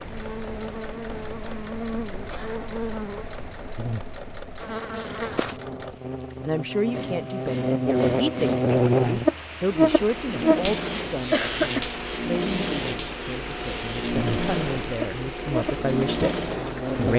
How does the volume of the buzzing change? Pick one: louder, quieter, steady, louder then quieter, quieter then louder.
louder then quieter.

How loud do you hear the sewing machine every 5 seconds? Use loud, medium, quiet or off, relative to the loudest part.
medium, medium, loud, loud.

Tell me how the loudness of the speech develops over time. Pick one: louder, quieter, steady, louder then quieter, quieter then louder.
quieter then louder.